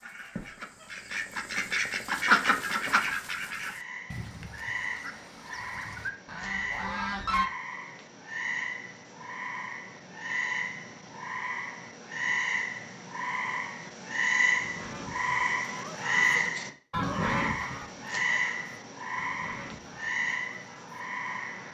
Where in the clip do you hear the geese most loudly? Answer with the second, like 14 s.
2 s.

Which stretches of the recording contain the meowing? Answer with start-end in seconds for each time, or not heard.
0.3-0.9.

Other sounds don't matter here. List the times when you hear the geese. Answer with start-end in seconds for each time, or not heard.
0.0-7.5, 14.6-21.6.